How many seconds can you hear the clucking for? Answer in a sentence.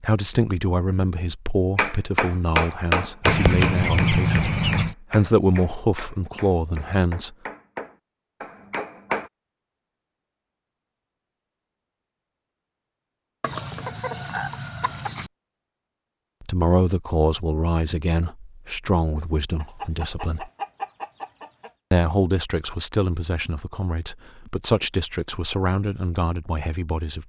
The clucking can be heard for 6 seconds in total.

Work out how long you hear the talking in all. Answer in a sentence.
The talking can be heard for 17 seconds in total.